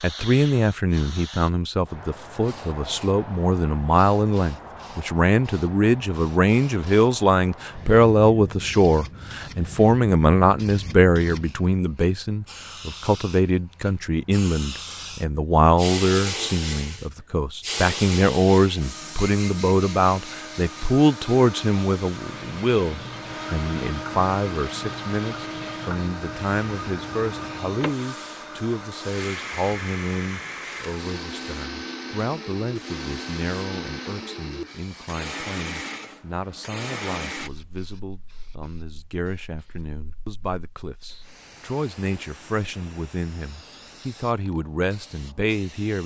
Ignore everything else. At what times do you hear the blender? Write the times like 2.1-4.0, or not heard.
18.8-37.5.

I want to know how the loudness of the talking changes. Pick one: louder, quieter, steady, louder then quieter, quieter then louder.
quieter.